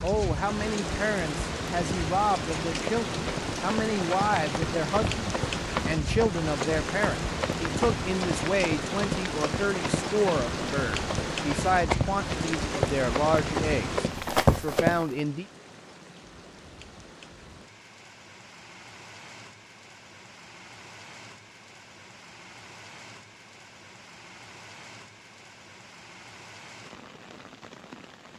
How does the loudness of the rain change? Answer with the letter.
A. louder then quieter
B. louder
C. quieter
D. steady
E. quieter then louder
C.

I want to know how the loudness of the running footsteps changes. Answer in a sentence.
The volume of the running footsteps goes up.